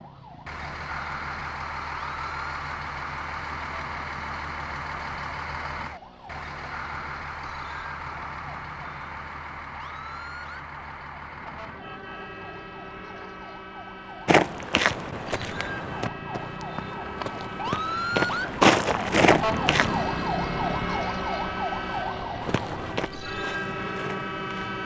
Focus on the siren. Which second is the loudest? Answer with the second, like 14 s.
20 s.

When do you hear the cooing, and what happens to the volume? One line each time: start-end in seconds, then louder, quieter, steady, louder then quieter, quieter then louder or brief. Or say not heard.
not heard.